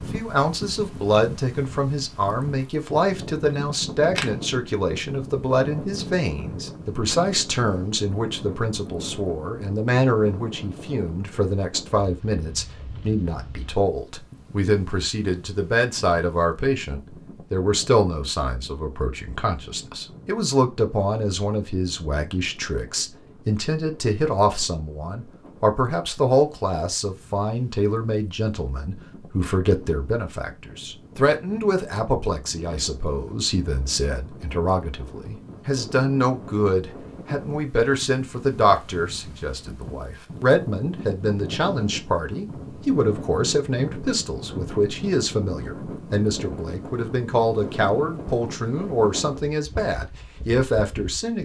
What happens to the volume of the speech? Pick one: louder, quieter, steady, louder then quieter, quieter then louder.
steady.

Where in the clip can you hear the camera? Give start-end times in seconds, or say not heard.
3.5-4.2.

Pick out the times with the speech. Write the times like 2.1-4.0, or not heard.
0.0-51.4.